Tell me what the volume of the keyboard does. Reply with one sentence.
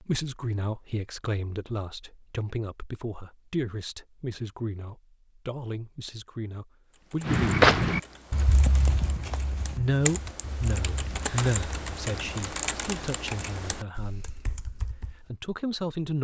The loudness of the keyboard goes up, then down.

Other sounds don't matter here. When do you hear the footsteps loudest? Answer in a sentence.
The volume of the footsteps peaks at 8 seconds.